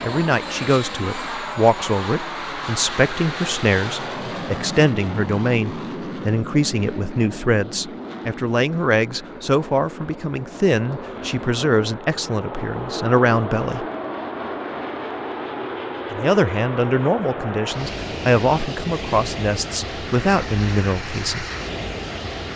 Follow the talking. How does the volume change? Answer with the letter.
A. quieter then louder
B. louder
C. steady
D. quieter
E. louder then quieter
C.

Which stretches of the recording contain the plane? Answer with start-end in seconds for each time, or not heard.
0.0-22.5.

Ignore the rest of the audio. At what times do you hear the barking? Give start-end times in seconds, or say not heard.
not heard.